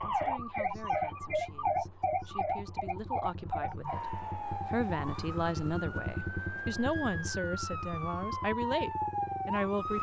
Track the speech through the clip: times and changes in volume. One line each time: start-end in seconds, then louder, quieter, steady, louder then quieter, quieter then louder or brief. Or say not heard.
0.0-9.9 louder.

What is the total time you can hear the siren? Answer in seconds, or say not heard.
10 s.